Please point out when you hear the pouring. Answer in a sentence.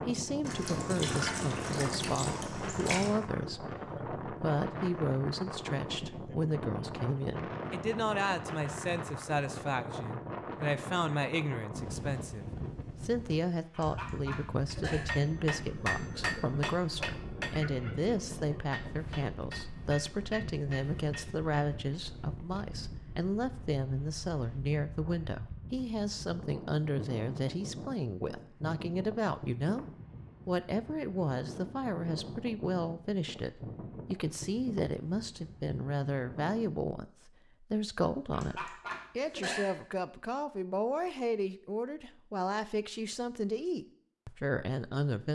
The pouring can be heard from 0.4 to 3.1 s.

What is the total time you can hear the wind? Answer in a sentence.
The wind can be heard for 37 seconds in total.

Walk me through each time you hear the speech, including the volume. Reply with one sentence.
You can hear the speech from 0.1 to 29.9 s, at a steady volume; and from 30.4 to 45.3 s, at a steady volume.